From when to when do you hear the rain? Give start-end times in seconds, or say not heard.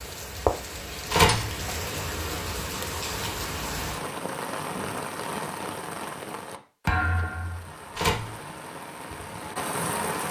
0.0-10.2.